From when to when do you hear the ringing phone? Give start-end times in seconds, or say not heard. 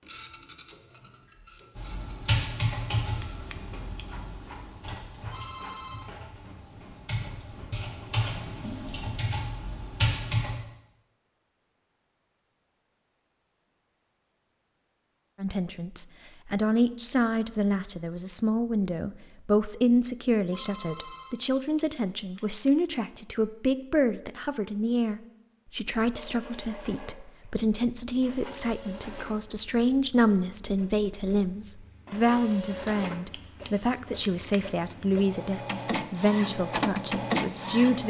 5.3-6.2, 20.5-21.4.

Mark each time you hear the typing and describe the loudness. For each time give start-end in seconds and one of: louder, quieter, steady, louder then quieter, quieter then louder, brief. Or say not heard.
1.8-10.6 quieter then louder.